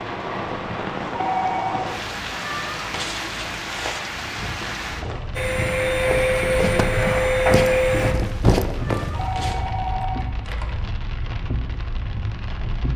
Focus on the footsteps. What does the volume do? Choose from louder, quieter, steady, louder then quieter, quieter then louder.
louder.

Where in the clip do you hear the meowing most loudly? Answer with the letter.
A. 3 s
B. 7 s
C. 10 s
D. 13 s
A.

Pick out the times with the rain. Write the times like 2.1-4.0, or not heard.
0.0-12.9.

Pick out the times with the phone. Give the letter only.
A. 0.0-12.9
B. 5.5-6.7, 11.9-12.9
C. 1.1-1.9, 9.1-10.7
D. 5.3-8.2
C.